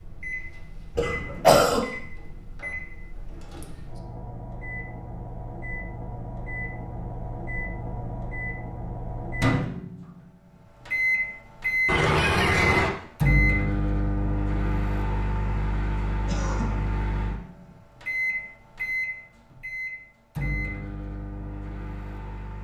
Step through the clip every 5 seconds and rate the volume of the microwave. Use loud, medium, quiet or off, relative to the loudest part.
quiet, medium, loud, medium, medium.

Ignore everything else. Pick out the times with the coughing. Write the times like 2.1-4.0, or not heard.
0.9-1.8, 11.8-12.9, 16.2-16.8.